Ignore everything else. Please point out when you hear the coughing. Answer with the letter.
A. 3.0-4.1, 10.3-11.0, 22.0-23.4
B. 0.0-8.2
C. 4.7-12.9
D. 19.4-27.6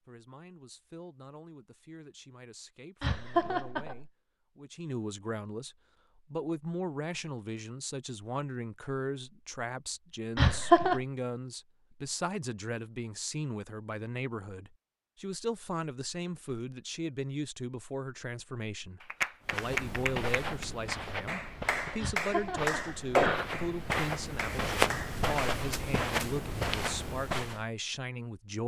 A.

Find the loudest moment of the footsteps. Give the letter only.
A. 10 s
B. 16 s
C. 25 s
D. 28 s
C.